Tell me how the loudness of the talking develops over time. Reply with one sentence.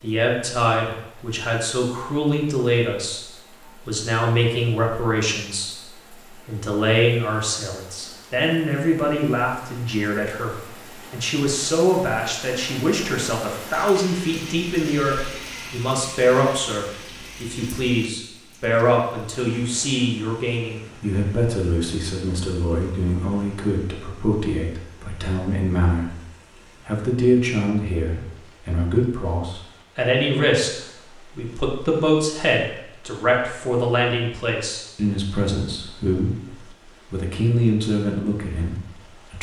The loudness of the talking stays about the same.